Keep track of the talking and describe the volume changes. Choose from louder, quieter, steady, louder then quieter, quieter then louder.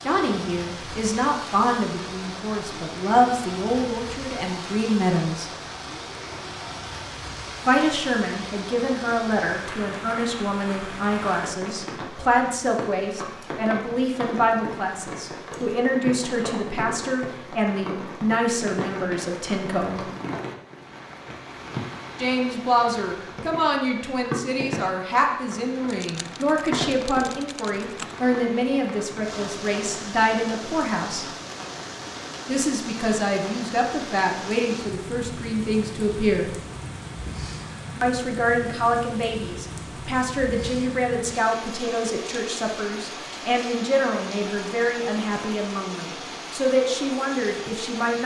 steady.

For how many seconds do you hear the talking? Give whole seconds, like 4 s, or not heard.
41 s.